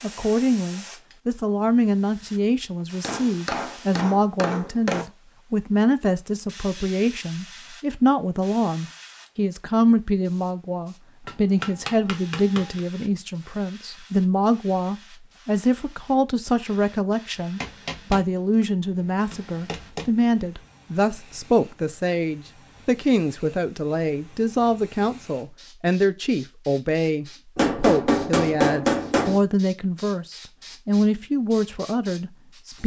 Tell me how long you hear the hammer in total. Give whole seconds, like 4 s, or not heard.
7 s.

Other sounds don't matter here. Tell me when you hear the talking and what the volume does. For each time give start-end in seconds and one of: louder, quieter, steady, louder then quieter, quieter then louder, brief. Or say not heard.
0.0-32.8 steady.